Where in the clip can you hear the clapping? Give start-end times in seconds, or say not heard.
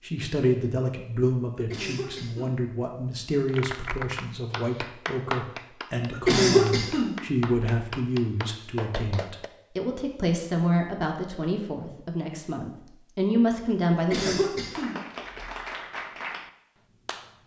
3.5-9.5, 14.7-17.4.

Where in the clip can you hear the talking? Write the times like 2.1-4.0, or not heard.
0.0-14.5.